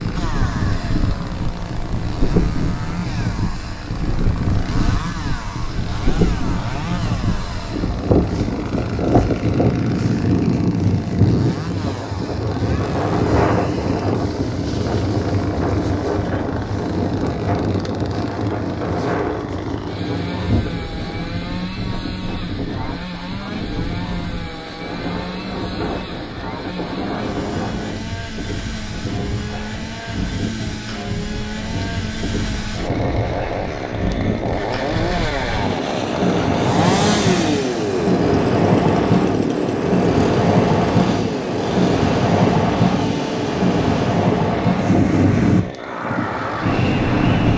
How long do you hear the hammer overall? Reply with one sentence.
The hammer can't be heard in this clip.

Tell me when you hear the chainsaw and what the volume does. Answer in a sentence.
You can hear the chainsaw from 0.0 to 47.5 s, getting louder.